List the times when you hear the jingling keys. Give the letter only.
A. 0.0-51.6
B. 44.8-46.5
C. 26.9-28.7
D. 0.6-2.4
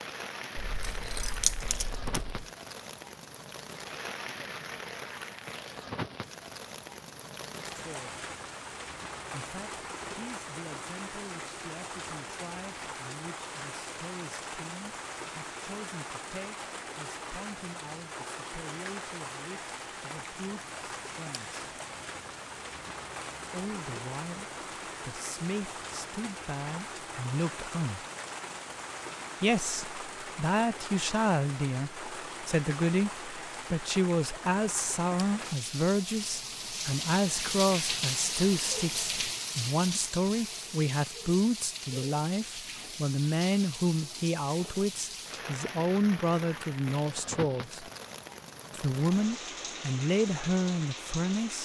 D.